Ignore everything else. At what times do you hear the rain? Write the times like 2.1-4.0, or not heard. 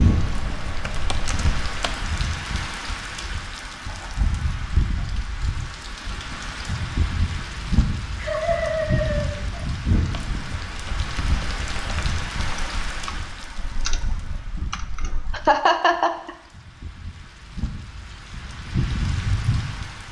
0.0-20.0.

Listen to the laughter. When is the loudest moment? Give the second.
16 s.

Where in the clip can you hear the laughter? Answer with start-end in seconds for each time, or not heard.
3.9-5.0, 8.2-9.7, 15.3-16.3.